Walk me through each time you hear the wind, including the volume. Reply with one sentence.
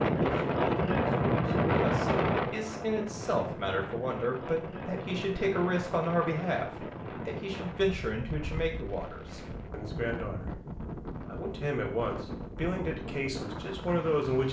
You can hear the wind from 0.0 to 14.4 s, getting quieter.